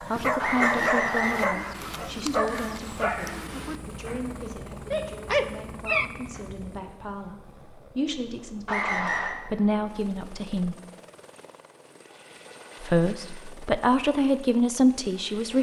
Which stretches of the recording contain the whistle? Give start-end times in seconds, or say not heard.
0.3-1.6, 8.7-9.3.